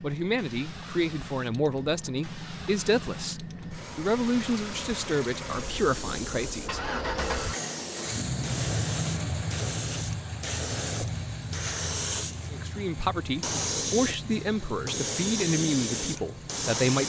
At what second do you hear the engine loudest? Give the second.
9 s.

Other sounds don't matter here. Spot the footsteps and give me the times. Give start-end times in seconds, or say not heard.
not heard.